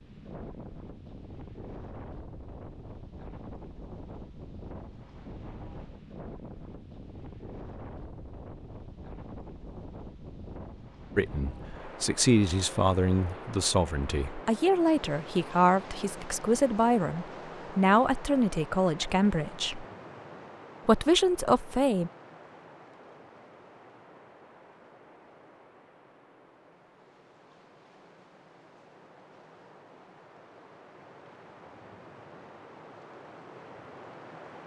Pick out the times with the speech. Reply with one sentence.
You can hear the speech from 11.2 to 19.9 s and from 20.9 to 22.1 s.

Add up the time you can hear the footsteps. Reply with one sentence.
The footsteps can't be heard in this clip.